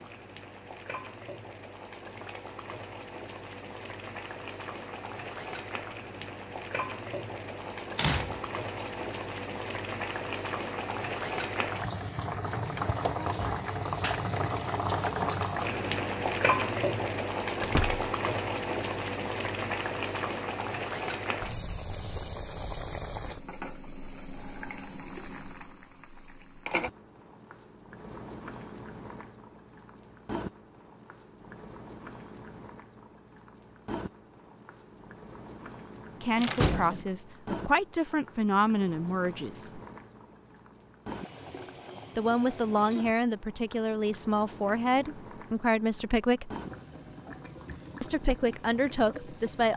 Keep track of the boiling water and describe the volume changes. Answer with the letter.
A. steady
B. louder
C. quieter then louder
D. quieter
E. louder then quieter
E.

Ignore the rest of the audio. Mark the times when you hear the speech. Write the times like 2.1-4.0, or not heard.
36.2-39.8, 42.1-46.5, 48.0-49.7.